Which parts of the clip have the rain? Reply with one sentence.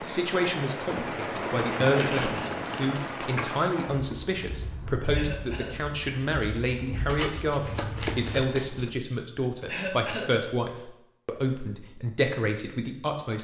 You can hear the rain from 0.0 to 8.2 s.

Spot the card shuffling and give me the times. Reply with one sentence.
You can hear the card shuffling from 1.9 to 4.3 s and from 7.0 to 8.9 s.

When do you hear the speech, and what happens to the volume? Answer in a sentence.
You can hear the speech from 0.0 to 13.3 s, at a steady volume.